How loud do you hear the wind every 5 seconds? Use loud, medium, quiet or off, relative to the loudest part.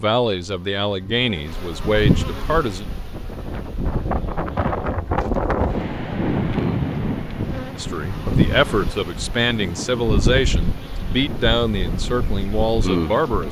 loud, loud, medium.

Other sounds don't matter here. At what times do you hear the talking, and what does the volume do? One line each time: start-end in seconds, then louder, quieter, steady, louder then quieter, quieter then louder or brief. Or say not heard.
0.0-2.9 brief
7.8-13.4 steady.